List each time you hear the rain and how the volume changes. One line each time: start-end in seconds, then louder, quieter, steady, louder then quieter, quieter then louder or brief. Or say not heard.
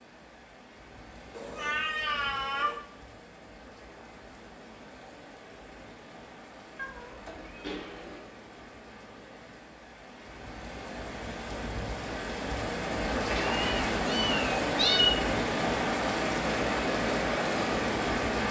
0.0-18.4 louder.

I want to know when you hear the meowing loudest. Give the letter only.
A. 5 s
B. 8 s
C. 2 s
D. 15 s
D.